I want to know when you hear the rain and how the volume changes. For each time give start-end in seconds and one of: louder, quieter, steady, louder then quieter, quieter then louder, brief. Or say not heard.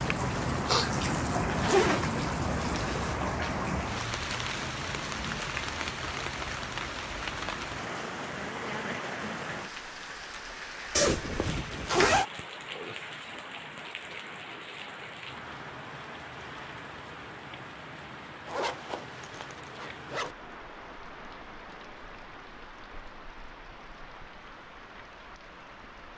0.0-26.1 quieter.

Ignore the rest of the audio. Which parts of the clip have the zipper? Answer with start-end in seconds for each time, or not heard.
1.6-3.1, 10.9-12.2, 18.4-20.4.